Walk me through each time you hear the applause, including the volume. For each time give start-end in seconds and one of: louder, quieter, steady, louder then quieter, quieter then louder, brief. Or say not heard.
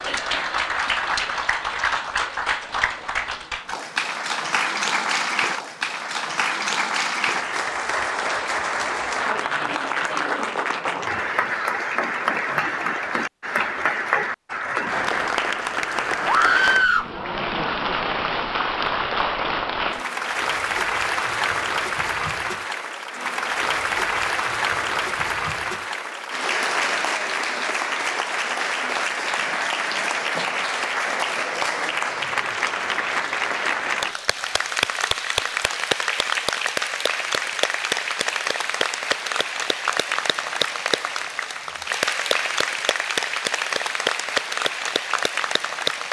0.0-46.0 steady.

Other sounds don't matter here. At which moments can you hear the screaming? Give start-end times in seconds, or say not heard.
16.2-17.1.